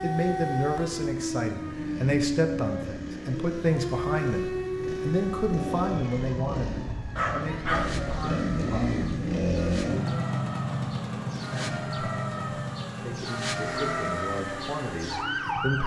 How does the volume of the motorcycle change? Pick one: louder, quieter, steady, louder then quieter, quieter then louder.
louder then quieter.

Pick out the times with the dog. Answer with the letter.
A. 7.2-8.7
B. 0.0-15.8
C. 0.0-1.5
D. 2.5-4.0
A.